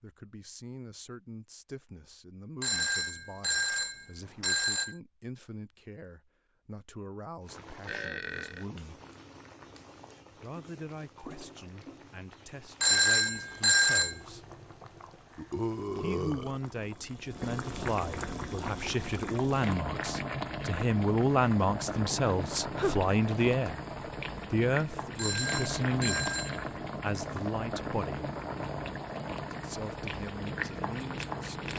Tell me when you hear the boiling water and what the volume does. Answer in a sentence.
You can hear the boiling water from 7.4 to 31.7 s, getting louder.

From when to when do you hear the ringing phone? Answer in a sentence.
You can hear the ringing phone from 2.6 to 5.0 s, from 12.8 to 14.2 s and from 25.1 to 26.6 s.